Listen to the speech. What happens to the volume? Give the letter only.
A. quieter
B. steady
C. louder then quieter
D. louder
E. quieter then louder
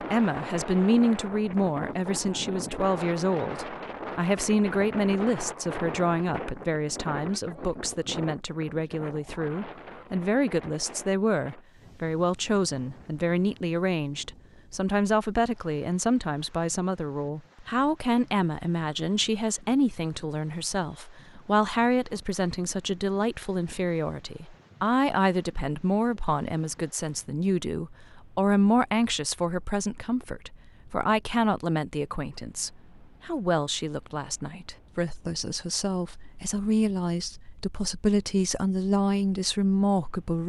B.